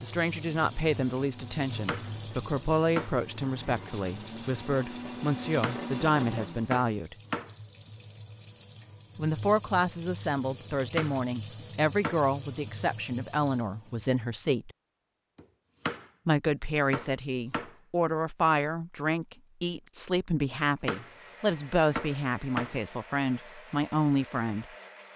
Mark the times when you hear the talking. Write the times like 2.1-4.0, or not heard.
0.0-7.2, 9.2-14.7, 16.2-24.6.